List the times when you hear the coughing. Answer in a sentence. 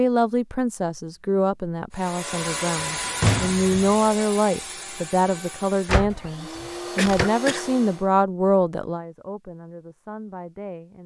The coughing can be heard from 7.0 to 7.7 s.